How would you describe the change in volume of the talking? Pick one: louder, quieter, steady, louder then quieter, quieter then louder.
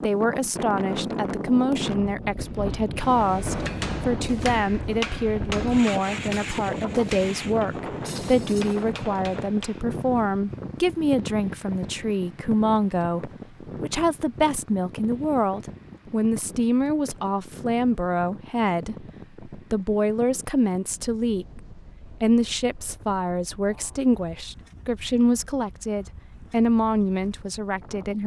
steady.